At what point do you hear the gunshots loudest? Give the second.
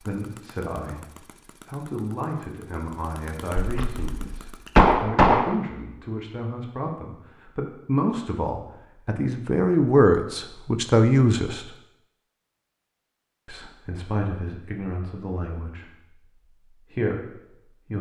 5 s.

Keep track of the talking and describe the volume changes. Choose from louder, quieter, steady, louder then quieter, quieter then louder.
louder then quieter.